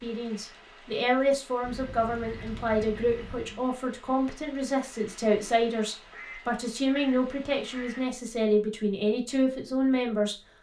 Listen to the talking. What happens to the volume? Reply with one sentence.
The volume of the talking stays about the same.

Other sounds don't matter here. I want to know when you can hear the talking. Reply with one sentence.
The talking can be heard from 0.0 to 10.3 s.